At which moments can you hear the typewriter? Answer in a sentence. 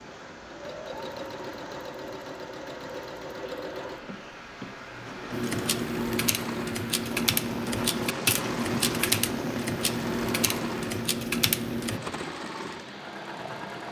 You can hear the typewriter from 5.3 to 12.0 s.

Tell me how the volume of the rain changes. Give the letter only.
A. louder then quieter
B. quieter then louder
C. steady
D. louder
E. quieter
A.